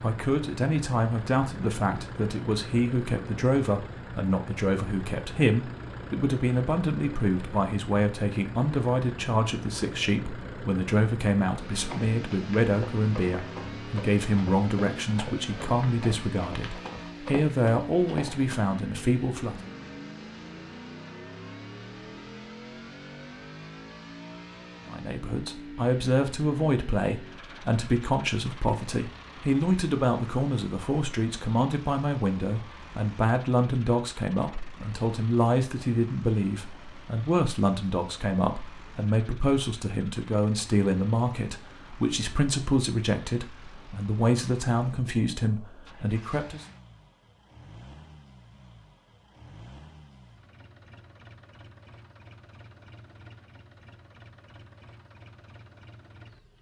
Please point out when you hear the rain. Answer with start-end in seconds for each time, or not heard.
not heard.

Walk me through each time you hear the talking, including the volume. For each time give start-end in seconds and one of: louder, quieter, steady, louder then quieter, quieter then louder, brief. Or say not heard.
0.0-19.7 steady
24.9-46.6 steady.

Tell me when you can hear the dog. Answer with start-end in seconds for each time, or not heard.
not heard.